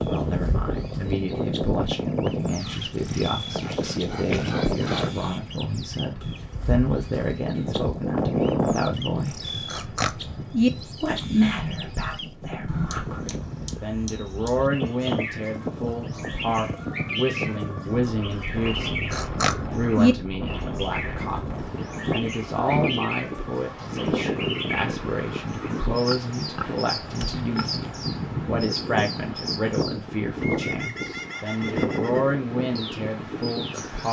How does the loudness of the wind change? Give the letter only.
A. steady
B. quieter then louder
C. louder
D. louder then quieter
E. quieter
A.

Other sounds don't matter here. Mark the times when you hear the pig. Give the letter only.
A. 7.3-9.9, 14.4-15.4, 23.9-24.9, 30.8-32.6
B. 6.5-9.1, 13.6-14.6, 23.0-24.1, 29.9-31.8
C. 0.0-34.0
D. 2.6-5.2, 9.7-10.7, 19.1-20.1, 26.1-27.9
D.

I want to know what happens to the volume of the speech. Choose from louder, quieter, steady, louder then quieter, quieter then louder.
steady.